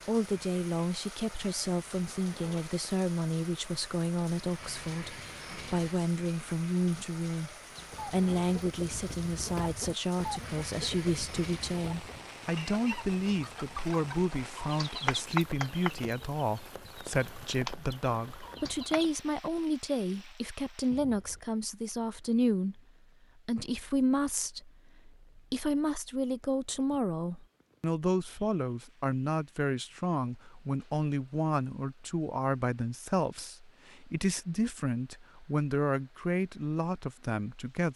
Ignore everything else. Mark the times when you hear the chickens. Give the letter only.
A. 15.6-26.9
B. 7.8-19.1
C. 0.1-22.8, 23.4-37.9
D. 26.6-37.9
B.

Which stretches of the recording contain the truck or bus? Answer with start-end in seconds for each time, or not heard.
not heard.